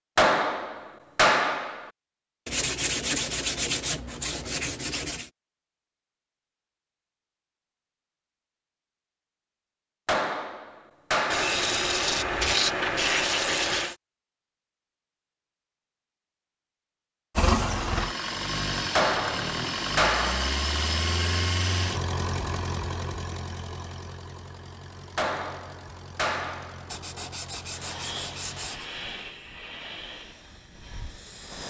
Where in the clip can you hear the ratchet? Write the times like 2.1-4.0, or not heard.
not heard.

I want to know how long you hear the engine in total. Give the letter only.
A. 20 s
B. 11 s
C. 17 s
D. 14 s
B.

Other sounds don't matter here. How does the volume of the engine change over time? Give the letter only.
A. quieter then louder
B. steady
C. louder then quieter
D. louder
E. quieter
E.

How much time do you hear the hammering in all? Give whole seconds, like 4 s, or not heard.
7 s.